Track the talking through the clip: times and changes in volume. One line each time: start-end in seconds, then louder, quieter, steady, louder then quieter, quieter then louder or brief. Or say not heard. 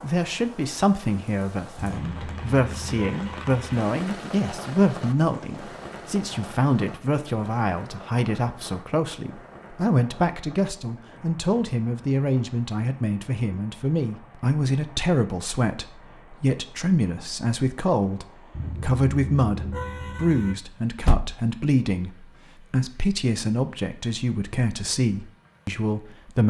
0.0-26.4 steady.